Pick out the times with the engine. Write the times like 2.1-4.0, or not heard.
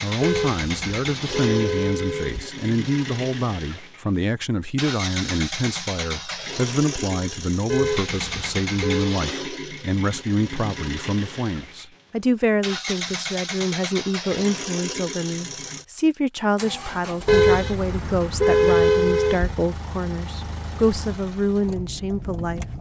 0.0-22.7.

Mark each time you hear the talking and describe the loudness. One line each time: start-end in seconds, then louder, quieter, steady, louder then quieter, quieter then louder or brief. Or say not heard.
0.0-22.6 steady.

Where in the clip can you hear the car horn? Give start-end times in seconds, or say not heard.
0.2-2.4, 7.7-9.2, 17.2-19.6.